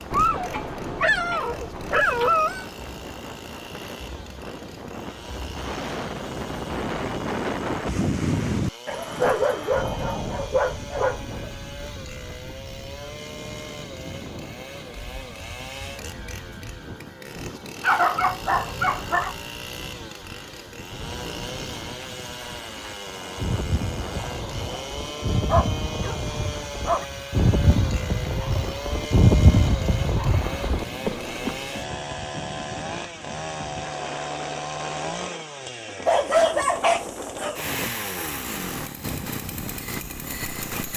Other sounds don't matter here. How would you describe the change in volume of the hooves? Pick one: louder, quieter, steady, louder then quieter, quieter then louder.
louder.